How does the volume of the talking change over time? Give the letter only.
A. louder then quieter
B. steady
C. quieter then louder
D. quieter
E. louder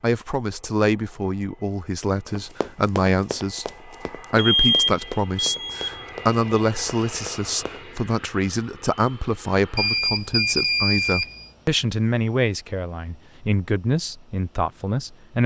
B.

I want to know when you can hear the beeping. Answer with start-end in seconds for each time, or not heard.
4.3-5.8, 9.8-11.4.